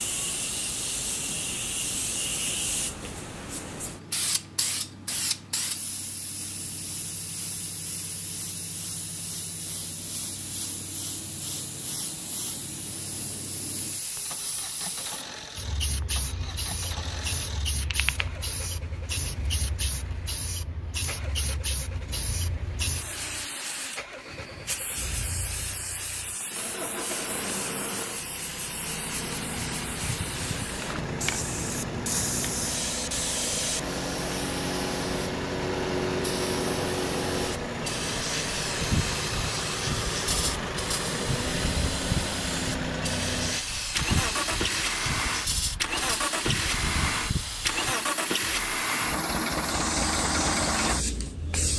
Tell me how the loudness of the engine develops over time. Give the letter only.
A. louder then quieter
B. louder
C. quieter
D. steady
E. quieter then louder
B.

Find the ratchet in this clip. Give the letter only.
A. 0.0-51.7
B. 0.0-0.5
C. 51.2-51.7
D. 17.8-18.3
D.